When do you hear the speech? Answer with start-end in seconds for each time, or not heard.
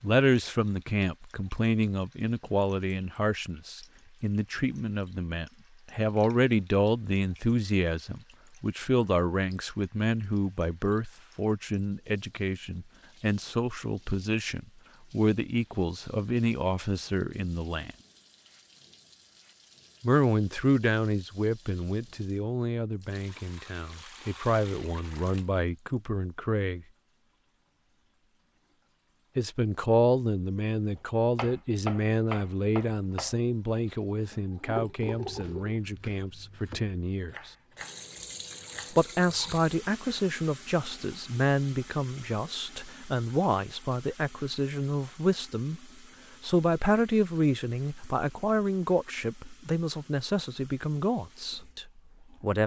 0.0-17.9, 20.0-26.9, 29.4-37.5, 38.9-52.6.